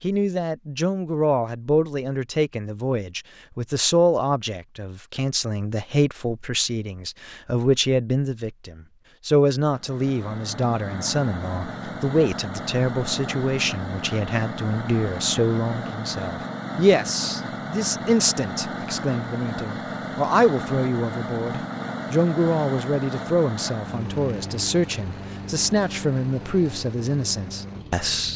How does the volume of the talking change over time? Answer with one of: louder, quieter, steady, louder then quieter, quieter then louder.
steady.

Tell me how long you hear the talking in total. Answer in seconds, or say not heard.
28 s.